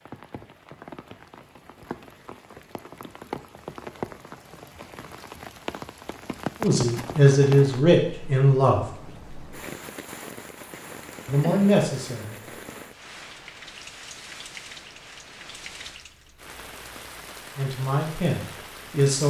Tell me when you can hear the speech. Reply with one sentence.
The speech can be heard from 6.6 to 8.8 s, from 11.2 to 12.3 s and from 17.6 to 19.2 s.